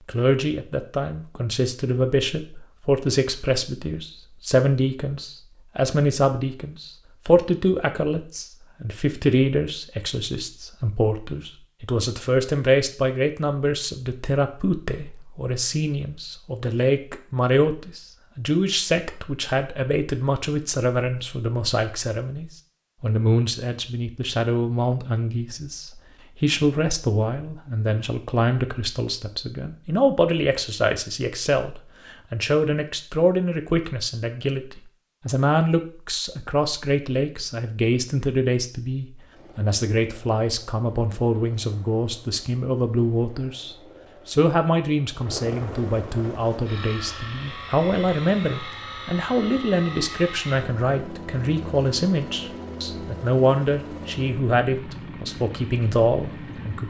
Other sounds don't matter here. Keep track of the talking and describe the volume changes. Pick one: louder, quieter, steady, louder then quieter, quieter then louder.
steady.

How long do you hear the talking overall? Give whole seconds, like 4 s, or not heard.
57 s.